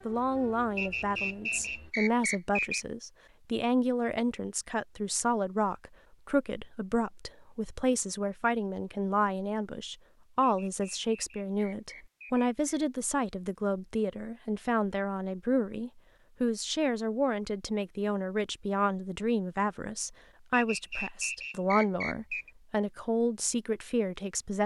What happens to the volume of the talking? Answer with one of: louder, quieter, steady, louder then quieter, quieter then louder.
steady.